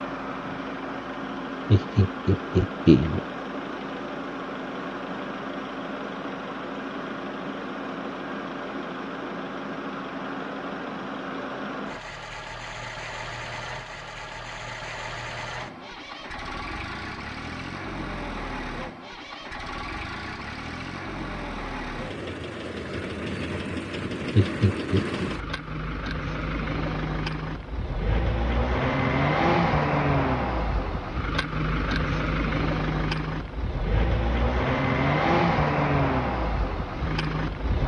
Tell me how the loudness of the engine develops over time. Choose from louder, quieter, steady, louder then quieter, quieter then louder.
louder.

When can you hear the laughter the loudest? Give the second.
3 s.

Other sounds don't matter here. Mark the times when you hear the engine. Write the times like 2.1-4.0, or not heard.
0.0-37.8.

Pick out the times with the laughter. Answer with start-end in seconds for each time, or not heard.
1.7-3.2, 24.4-25.3.